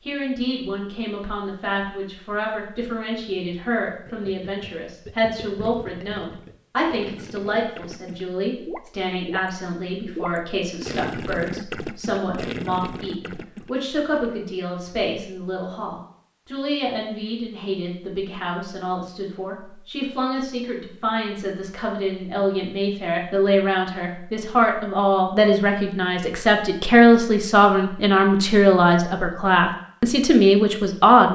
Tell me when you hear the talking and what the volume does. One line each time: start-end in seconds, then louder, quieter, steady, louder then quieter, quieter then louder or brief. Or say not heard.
0.0-31.3 louder.